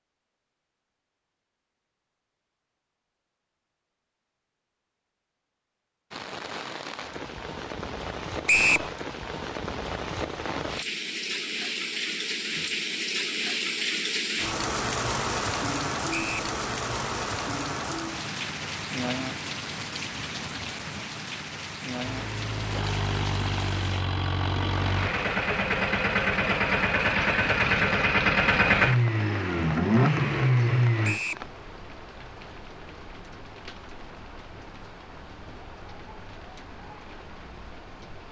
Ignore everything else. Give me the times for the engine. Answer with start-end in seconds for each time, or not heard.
22.0-31.2.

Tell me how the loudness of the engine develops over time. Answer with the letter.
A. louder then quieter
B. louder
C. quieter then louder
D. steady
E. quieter
B.